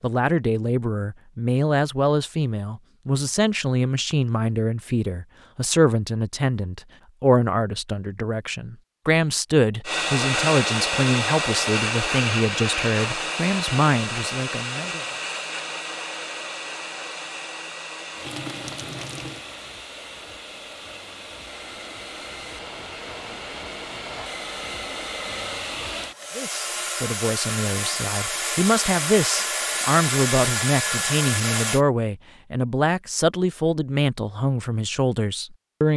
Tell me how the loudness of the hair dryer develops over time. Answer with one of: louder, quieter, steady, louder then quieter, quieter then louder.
quieter then louder.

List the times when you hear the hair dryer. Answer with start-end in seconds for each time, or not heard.
9.8-31.8.